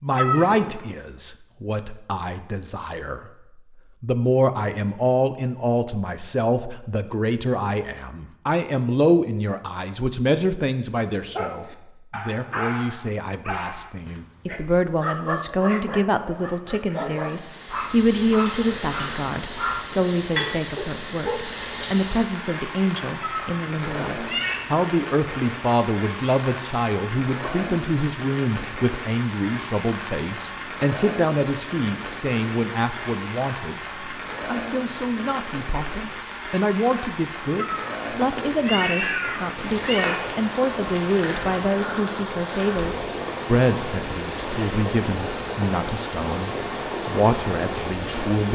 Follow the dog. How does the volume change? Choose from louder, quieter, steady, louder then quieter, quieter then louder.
steady.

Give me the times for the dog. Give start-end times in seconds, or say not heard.
11.1-21.4.